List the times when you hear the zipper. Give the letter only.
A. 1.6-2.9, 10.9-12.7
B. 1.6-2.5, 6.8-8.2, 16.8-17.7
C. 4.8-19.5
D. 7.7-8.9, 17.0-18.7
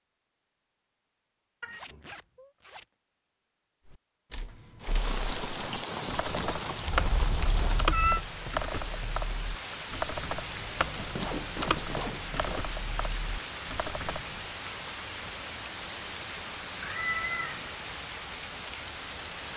A.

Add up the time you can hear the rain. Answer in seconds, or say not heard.
15 s.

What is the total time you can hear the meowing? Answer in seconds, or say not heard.
3 s.